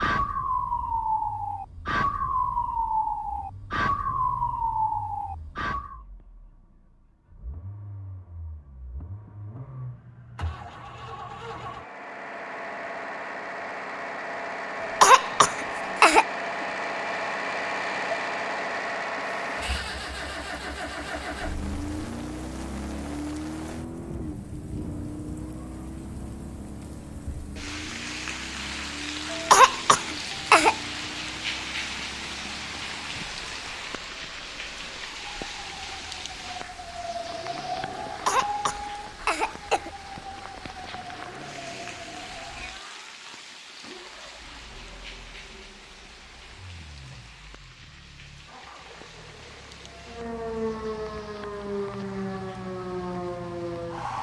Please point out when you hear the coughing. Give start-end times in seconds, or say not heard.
14.8-16.2, 29.3-30.8, 38.0-39.9.